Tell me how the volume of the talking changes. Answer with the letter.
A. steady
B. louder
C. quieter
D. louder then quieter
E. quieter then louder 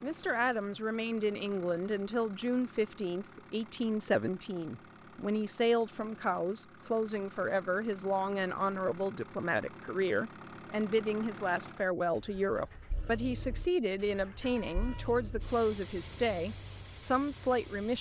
A.